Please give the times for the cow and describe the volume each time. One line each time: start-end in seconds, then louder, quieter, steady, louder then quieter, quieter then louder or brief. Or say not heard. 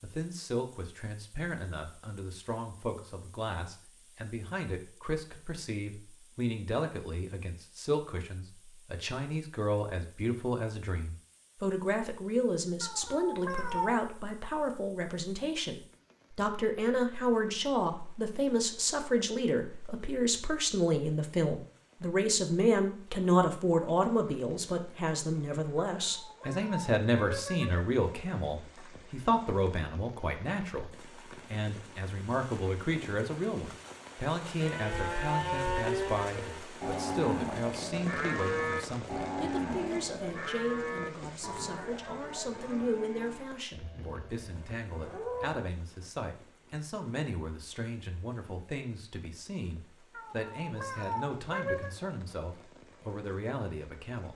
34.6-45.6 quieter.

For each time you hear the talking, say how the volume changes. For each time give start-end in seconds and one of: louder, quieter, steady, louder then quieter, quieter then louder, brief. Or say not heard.
0.0-54.3 louder then quieter.